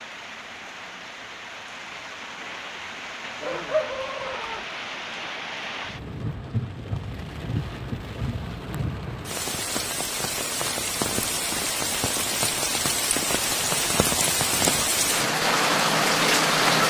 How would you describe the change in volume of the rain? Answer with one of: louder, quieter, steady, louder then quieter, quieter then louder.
louder.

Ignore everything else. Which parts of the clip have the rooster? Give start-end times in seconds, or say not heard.
3.4-4.7.